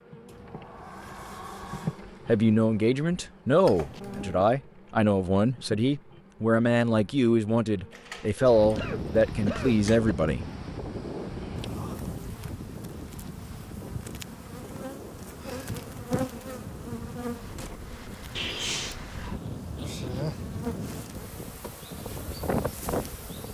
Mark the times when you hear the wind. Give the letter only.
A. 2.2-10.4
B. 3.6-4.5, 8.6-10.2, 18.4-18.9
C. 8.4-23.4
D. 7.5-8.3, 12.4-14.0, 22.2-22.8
C.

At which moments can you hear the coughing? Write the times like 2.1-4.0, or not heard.
3.6-4.5, 8.6-10.2, 18.4-18.9.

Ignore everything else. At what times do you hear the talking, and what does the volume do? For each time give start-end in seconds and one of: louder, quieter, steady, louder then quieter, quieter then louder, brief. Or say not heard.
2.2-10.4 steady.